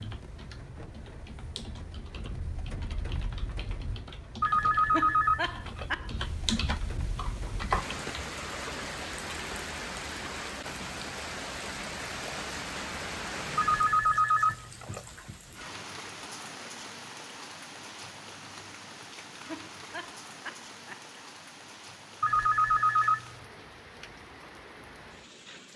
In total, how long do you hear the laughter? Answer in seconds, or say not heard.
3 s.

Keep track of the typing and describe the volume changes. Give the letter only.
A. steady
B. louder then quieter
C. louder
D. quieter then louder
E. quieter
C.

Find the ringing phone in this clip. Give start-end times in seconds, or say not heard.
4.4-5.9, 13.6-15.1, 22.2-23.4.